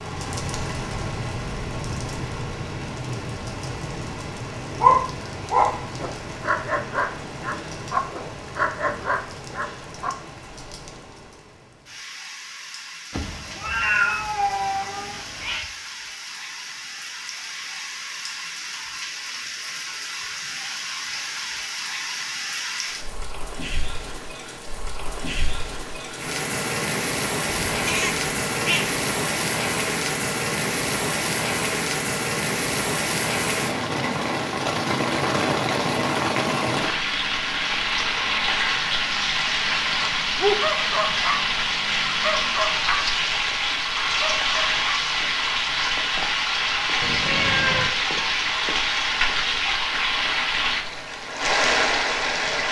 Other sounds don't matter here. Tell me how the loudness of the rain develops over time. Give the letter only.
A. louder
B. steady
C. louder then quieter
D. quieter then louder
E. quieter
A.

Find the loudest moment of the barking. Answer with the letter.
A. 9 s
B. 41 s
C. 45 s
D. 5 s
D.